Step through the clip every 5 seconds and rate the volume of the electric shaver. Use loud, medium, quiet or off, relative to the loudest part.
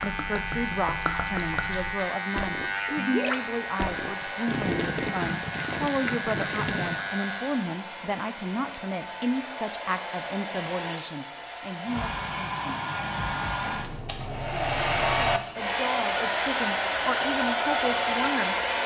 loud, loud, off, off.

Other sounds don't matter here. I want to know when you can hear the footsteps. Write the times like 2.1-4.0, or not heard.
not heard.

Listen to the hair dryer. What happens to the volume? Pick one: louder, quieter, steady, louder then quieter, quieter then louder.
louder.